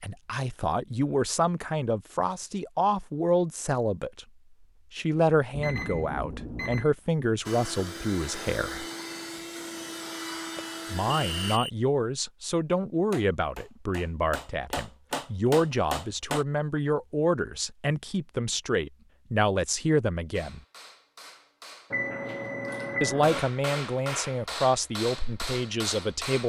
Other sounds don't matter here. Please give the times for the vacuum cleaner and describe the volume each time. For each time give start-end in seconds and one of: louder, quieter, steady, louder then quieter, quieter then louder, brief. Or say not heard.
7.5-11.6 steady.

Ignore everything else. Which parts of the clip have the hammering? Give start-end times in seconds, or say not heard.
13.1-16.4, 20.3-26.4.